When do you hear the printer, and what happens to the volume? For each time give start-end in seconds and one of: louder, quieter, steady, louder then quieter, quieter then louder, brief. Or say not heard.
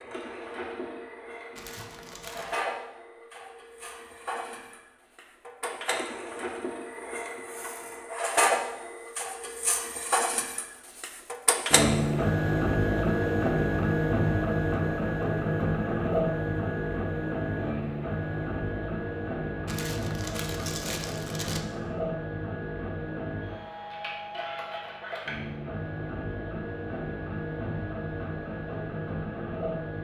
0.0-29.9 louder then quieter.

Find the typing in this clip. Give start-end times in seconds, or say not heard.
not heard.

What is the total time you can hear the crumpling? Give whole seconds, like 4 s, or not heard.
3 s.